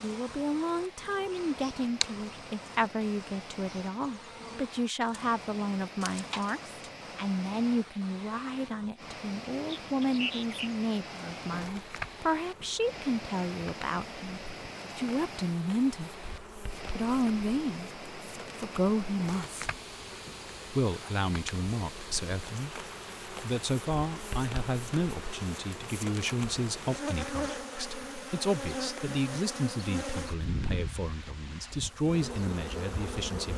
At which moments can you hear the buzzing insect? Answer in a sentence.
The buzzing insect can be heard from 0.0 to 33.5 s.